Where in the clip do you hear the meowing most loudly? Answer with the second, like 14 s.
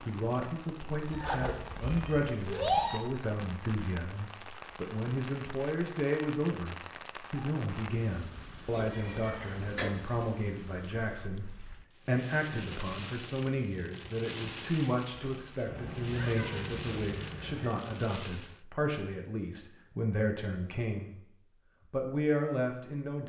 3 s.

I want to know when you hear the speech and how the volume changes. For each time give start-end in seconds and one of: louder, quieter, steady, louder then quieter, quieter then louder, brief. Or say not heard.
0.0-21.2 steady
21.9-23.2 brief.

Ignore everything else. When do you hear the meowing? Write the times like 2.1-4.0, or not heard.
1.1-3.0, 8.7-9.9, 15.7-17.6.